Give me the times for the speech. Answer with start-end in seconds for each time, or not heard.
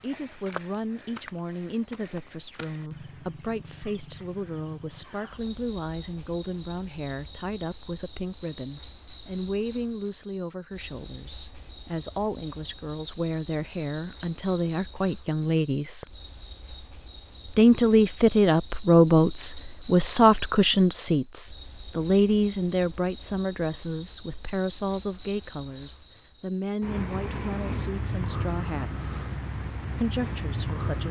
0.0-16.1, 17.5-29.2, 29.9-31.0.